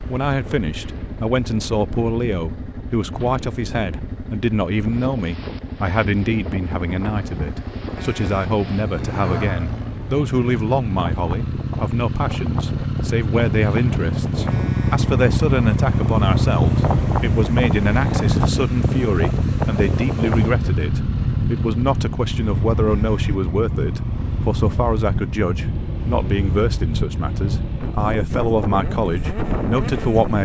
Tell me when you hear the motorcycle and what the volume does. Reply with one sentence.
You can hear the motorcycle from 0.0 to 30.4 s, getting louder then quieter.